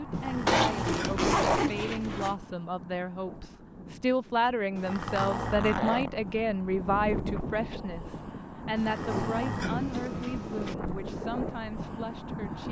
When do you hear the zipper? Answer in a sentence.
You can hear the zipper from 0.5 to 2.4 s, from 5.0 to 6.2 s and from 8.9 to 10.2 s.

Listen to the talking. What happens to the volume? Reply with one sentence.
The loudness of the talking goes up, then down.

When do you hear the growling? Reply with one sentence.
You can hear the growling from 0.1 to 1.2 s, from 4.8 to 5.6 s and from 8.8 to 10.8 s.